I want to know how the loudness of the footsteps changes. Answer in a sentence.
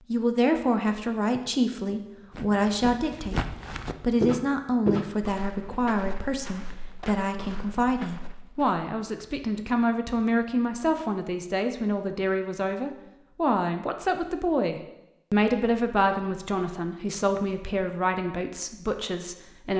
The volume of the footsteps goes up, then down.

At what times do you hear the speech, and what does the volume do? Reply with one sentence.
The speech can be heard from 0.1 to 19.7 s, at a steady volume.